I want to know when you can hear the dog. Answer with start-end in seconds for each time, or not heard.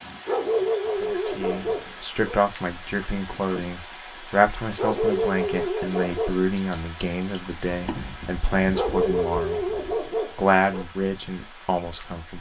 0.2-2.4, 4.8-6.4, 8.7-10.8.